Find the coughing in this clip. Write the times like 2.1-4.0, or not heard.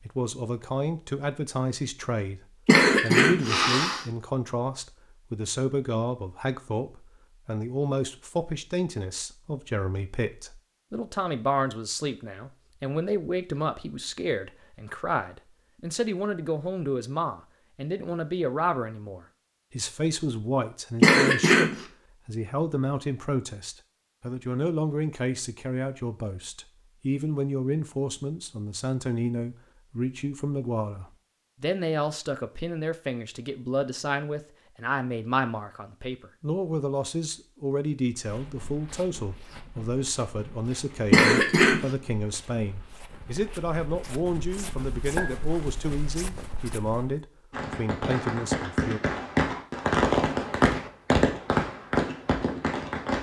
2.6-4.0, 21.0-21.9, 41.1-41.9.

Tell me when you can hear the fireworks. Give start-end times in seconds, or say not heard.
47.5-53.1.